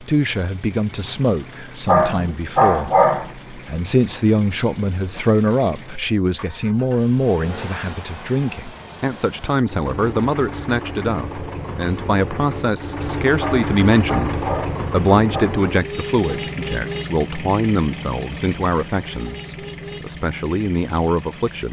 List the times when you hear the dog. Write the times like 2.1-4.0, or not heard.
1.9-3.3, 13.4-15.6.